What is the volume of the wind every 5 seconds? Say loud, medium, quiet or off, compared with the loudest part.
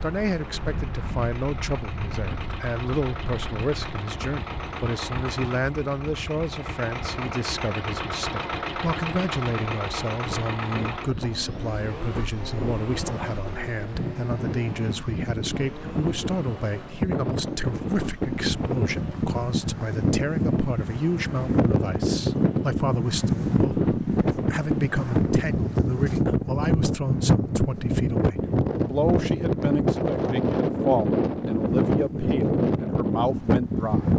quiet, quiet, medium, medium, loud, loud, loud.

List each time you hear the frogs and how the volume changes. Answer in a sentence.
You can't hear the frogs here.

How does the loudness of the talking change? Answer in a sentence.
The loudness of the talking stays about the same.